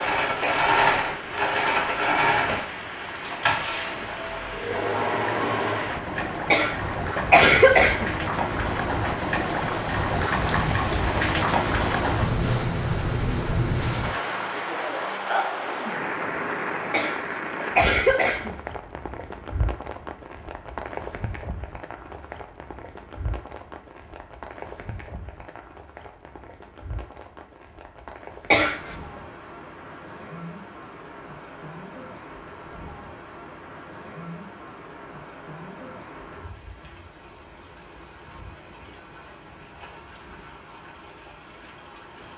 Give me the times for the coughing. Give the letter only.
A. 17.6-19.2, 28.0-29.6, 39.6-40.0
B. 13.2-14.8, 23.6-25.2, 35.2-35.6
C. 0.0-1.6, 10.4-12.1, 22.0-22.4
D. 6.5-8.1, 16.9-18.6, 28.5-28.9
D.